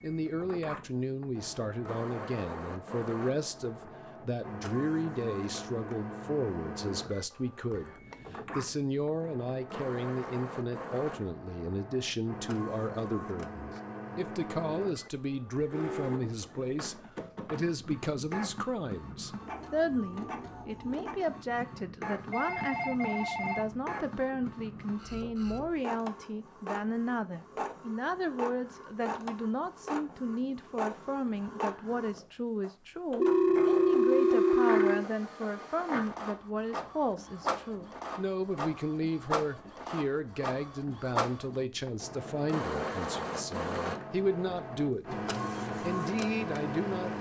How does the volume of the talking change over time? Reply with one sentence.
The loudness of the talking stays about the same.